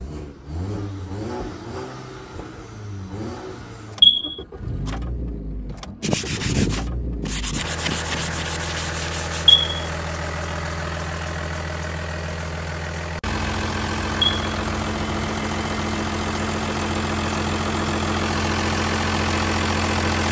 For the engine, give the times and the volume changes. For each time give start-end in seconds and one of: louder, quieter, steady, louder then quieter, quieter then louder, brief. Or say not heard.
0.0-20.2 louder.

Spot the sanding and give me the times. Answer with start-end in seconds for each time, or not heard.
6.0-9.6.